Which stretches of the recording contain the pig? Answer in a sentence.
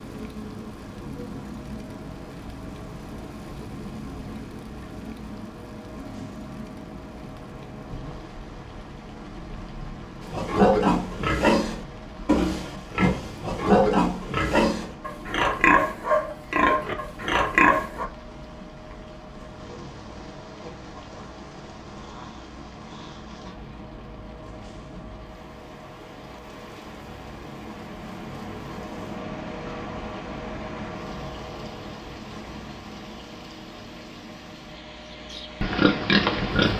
The pig can be heard from 10.2 to 18.1 s and from 35.3 to 36.7 s.